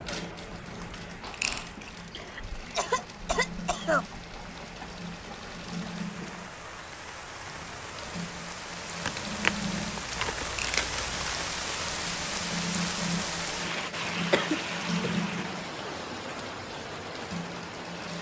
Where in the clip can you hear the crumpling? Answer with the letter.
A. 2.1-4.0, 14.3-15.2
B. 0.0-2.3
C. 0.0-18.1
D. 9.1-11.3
D.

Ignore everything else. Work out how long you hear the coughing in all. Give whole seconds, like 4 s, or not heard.
3 s.